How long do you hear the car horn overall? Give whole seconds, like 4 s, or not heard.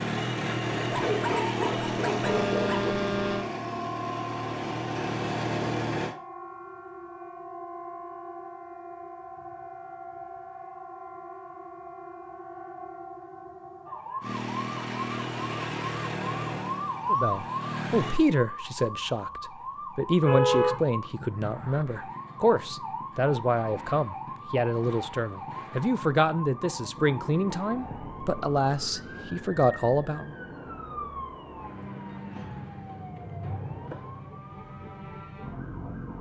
3 s.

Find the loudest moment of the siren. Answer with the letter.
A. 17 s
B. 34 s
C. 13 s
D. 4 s
A.